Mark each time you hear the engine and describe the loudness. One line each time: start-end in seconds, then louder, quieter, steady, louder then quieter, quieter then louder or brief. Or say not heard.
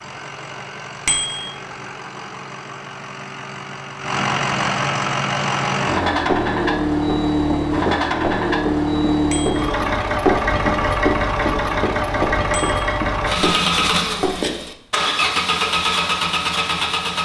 0.0-17.2 louder.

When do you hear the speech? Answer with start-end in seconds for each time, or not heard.
not heard.